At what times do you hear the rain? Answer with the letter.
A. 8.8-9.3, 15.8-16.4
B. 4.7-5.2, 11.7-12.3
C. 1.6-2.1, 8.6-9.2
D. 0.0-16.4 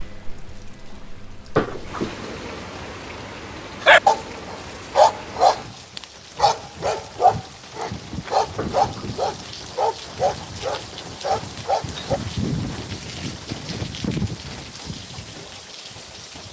D.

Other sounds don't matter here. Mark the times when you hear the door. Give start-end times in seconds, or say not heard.
1.6-2.1, 8.6-9.2.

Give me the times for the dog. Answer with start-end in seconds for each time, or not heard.
3.8-12.2.